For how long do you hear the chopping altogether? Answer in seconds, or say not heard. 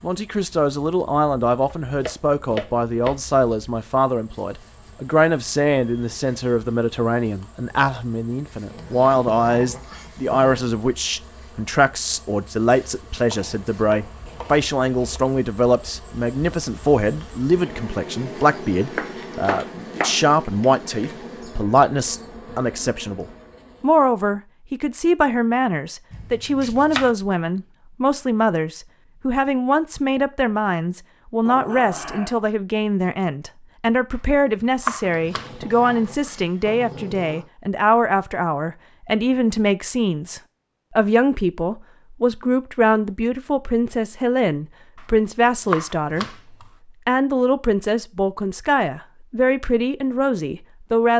8 s.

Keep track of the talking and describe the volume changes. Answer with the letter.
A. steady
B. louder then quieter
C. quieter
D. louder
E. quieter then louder
A.